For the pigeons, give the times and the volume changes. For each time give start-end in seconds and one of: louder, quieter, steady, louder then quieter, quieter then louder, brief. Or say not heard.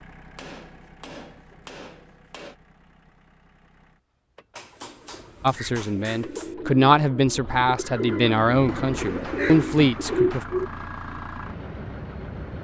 5.1-10.7 louder.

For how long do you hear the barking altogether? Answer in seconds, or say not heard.
not heard.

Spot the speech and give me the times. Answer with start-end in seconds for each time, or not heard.
5.4-10.4.